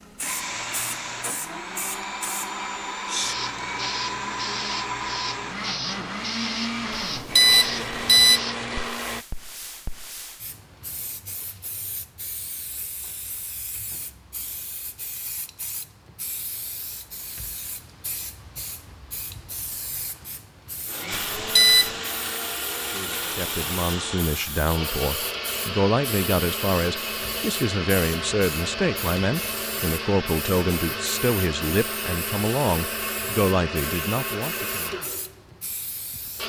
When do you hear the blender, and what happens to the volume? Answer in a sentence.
You can hear the blender from 0.0 to 9.2 s, at a steady volume; and from 20.8 to 36.4 s, at a steady volume.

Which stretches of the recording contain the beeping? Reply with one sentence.
The beeping can be heard from 7.2 to 8.4 s and from 21.1 to 21.9 s.